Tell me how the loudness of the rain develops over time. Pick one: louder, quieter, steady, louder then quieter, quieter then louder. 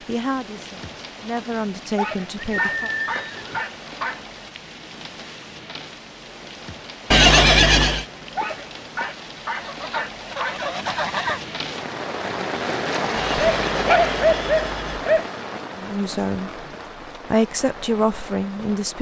louder then quieter.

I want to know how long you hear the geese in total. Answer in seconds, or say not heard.
2 s.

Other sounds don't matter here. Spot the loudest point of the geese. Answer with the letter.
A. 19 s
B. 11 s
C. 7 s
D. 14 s
B.